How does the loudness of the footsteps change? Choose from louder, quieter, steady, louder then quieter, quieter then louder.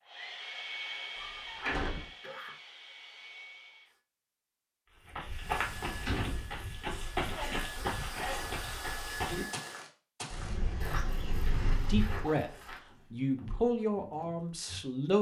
quieter.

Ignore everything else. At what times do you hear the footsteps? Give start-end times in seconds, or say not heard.
5.0-14.8.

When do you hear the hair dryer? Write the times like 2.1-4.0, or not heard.
0.0-4.0, 5.3-9.8.